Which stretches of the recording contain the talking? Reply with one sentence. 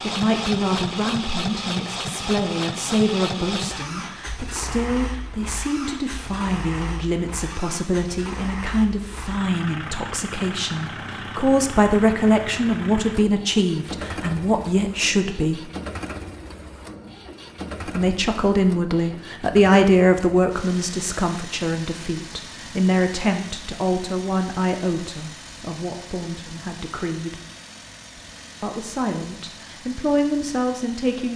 The talking can be heard from 0.0 to 15.6 s, from 17.9 to 27.4 s and from 28.6 to 31.3 s.